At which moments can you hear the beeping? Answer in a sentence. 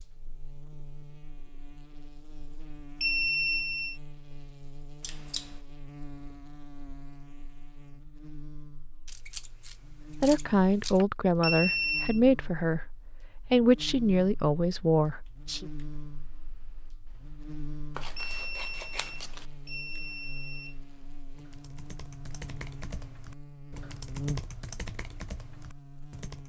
You can hear the beeping from 3.0 to 4.0 s, from 11.4 to 12.2 s and from 18.1 to 20.8 s.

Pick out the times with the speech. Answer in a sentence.
You can hear the speech from 10.2 to 15.7 s.